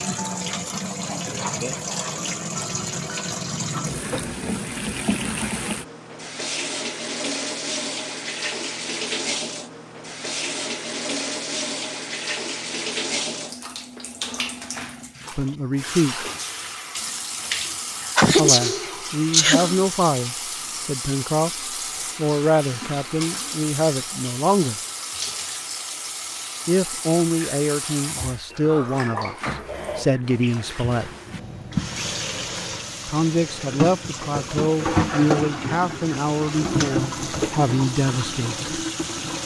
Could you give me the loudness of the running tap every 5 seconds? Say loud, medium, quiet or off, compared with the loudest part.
loud, loud, loud, medium, medium, medium, loud, loud.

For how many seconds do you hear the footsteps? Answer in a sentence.
You can't hear the footsteps here.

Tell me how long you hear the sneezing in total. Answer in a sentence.
You can hear the sneezing for 2 seconds altogether.